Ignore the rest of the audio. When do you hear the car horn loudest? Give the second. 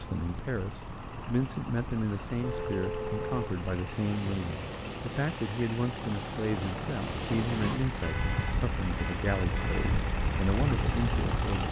3 s.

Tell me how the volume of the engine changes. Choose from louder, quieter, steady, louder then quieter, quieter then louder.
louder.